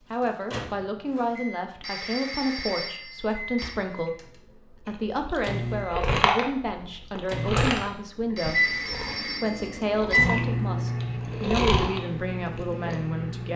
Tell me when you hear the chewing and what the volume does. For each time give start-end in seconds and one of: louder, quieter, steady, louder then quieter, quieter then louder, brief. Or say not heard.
4.8-12.9 quieter then louder.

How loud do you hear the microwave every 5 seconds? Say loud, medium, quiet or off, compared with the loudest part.
quiet, loud, loud.